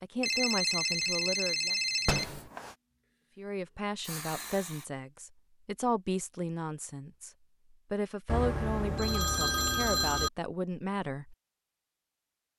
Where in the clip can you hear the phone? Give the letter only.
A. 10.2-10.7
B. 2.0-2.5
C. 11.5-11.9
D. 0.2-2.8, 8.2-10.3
D.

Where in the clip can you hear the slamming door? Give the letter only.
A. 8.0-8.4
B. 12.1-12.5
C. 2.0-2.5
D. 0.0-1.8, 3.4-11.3
C.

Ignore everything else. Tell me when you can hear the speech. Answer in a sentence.
You can hear the speech from 0.0 to 1.8 s and from 3.4 to 11.3 s.